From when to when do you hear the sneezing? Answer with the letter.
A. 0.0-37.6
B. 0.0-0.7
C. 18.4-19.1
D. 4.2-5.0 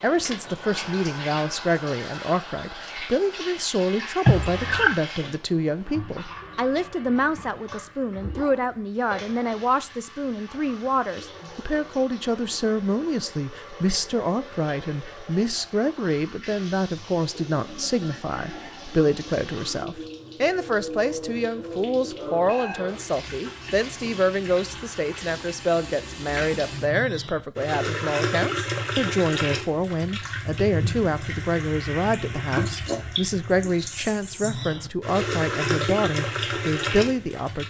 D.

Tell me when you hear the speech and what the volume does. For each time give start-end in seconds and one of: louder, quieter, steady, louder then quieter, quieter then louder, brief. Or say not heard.
0.0-37.6 steady.